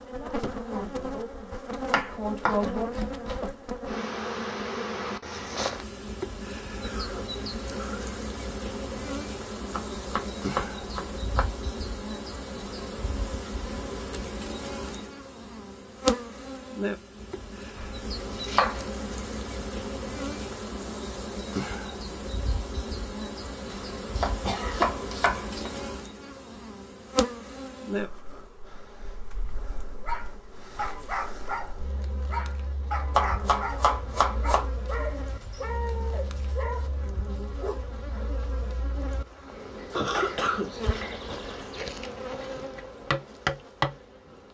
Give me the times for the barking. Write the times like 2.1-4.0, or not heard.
30.0-38.2.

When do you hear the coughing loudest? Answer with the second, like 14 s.
40 s.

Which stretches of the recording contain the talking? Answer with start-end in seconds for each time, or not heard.
0.0-2.9.